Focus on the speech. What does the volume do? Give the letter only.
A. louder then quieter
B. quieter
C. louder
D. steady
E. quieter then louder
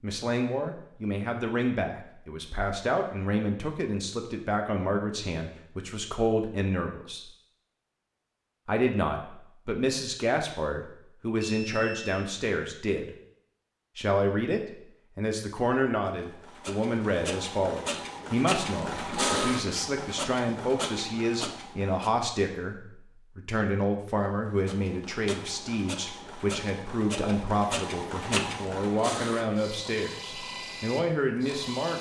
D.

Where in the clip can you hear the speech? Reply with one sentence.
You can hear the speech from 0.0 to 7.2 s, from 8.7 to 13.2 s and from 13.9 to 31.9 s.